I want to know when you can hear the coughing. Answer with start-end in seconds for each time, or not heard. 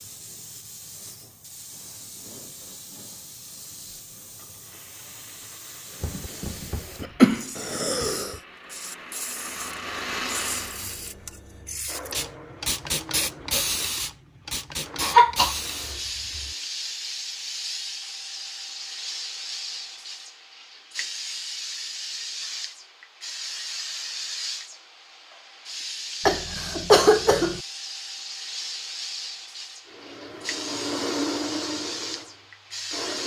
6.0-8.3, 15.0-16.4, 26.2-27.6.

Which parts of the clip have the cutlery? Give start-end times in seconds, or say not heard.
not heard.